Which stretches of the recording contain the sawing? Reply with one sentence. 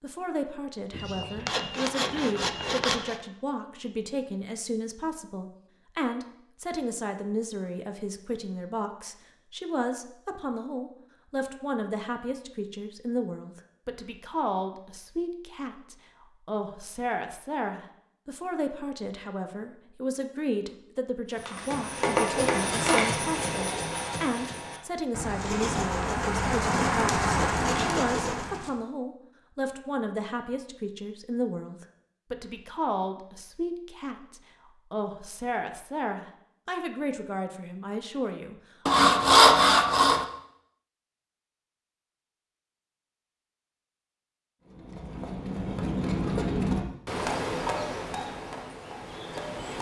The sawing can be heard from 0.9 to 3.1 s, from 25.4 to 28.4 s and from 38.9 to 40.2 s.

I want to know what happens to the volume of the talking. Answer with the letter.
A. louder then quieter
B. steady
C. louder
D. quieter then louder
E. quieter
B.